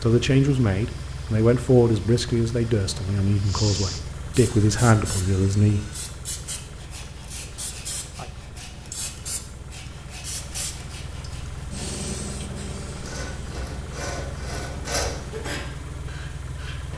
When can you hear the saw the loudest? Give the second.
15 s.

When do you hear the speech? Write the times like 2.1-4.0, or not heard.
0.0-5.8.